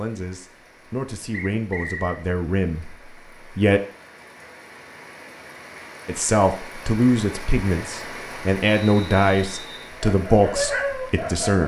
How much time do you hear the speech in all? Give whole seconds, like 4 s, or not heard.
9 s.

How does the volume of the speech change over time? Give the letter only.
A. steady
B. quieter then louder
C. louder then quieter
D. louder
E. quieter
D.